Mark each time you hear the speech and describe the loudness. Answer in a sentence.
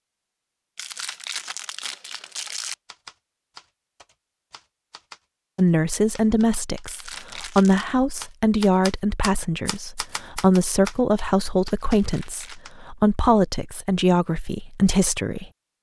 You can hear the speech from 5.5 to 15.5 s, at a steady volume.